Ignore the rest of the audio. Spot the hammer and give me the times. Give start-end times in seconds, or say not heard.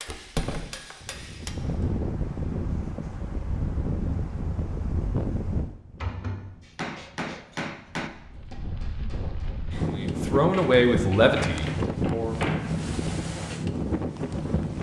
0.0-1.9, 6.7-9.5.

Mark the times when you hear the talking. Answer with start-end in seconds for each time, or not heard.
9.9-12.3.